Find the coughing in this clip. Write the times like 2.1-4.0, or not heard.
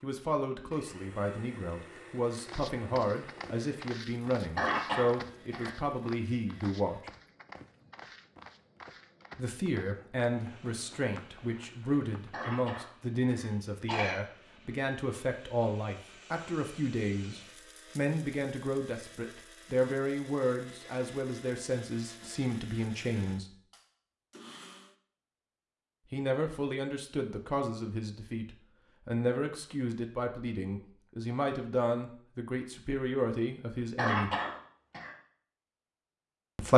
4.5-5.8, 12.3-14.2, 34.0-35.1.